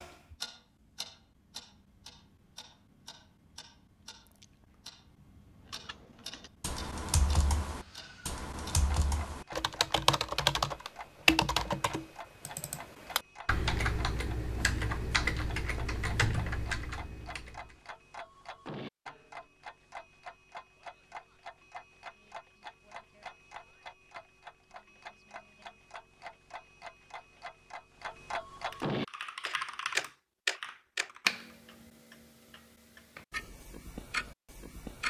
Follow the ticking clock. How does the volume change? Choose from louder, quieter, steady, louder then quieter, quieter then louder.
louder.